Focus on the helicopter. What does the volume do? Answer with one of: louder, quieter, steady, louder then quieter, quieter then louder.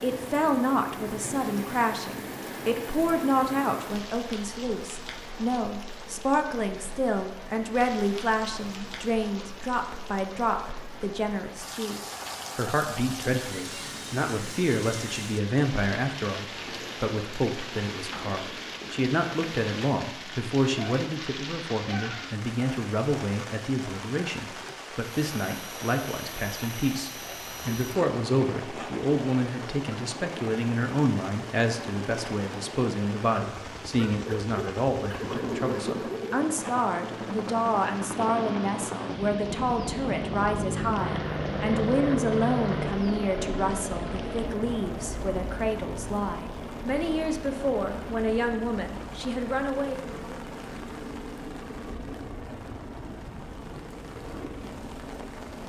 louder then quieter.